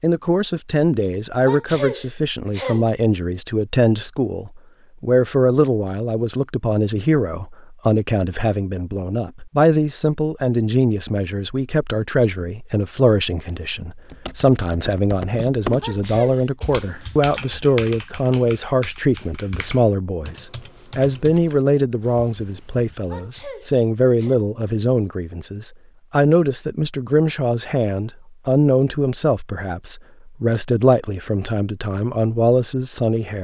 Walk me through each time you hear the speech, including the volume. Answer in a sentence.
You can hear the speech from 0.0 to 33.4 s, at a steady volume.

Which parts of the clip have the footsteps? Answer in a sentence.
You can't hear the footsteps here.